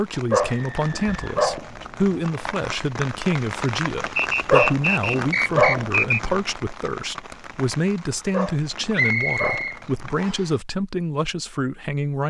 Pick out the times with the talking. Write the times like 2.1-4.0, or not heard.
0.0-12.2.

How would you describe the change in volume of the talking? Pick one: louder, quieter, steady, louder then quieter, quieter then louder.
steady.